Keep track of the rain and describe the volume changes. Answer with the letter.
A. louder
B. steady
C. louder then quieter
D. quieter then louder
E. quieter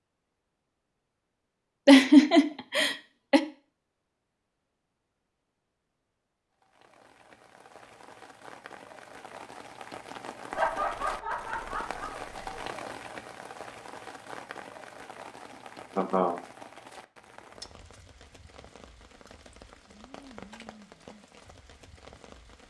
C.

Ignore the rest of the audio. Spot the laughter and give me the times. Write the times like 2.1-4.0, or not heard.
1.9-3.4, 10.5-12.7, 15.9-16.4.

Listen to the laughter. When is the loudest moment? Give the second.
2 s.